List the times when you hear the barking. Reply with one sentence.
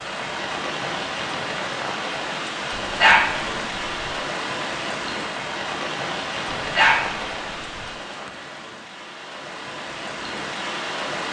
The barking can be heard from 2.9 to 4.1 s and from 6.5 to 7.9 s.